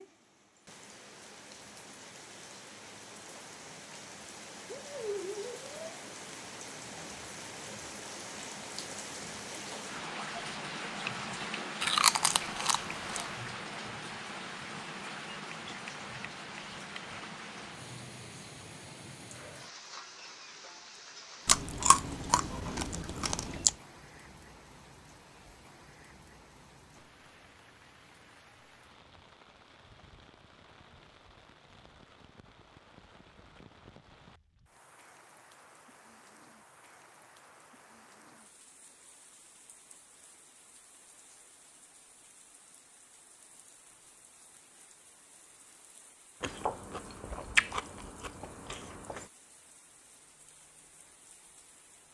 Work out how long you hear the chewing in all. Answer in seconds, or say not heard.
7 s.